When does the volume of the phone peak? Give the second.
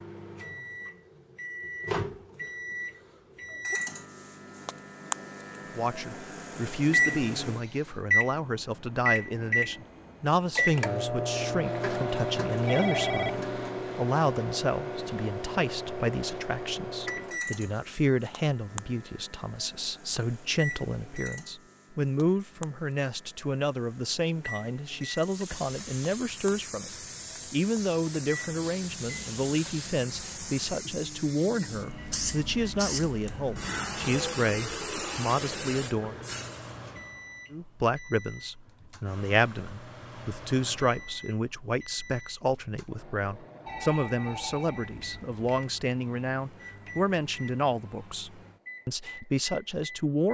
13 s.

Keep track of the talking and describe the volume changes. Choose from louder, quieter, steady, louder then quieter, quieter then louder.
steady.